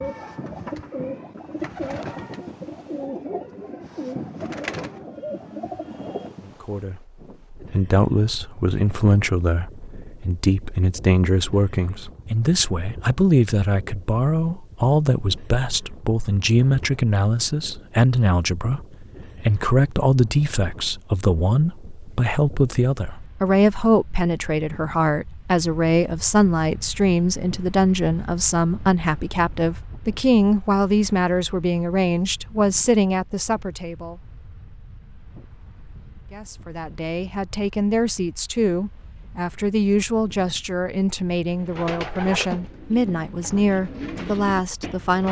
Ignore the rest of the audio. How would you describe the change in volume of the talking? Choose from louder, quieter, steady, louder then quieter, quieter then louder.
steady.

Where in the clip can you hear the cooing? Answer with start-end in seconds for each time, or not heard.
0.0-6.3, 41.5-45.2.